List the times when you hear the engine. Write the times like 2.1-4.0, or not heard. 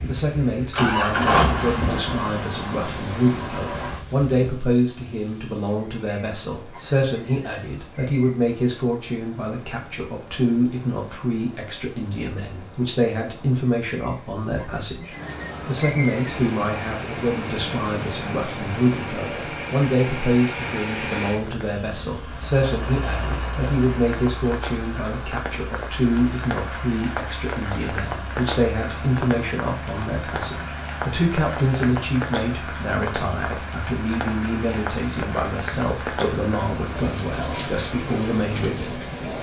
0.0-4.3, 16.1-39.3.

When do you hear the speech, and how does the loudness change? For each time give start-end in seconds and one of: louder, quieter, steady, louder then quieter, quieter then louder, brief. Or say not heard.
0.1-39.0 steady.